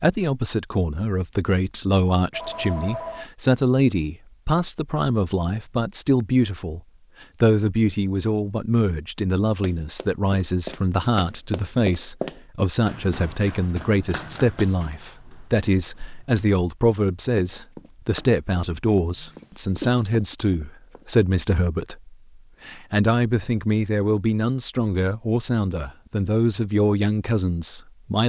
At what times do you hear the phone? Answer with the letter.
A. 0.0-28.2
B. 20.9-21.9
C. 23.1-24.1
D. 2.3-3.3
D.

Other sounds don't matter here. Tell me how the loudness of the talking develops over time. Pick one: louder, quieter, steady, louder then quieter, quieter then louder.
steady.